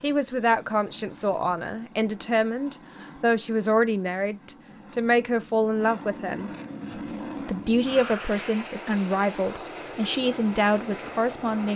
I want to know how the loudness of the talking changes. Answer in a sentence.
The loudness of the talking stays about the same.